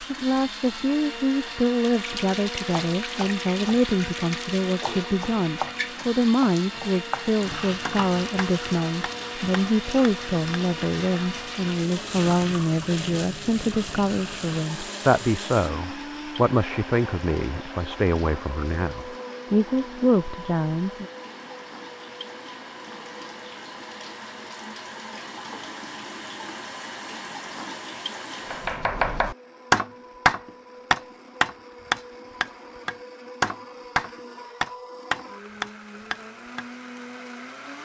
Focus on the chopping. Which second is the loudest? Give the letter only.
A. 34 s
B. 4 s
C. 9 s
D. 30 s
D.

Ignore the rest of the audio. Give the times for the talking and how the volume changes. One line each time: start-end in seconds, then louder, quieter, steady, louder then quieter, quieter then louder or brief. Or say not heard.
0.0-21.1 steady.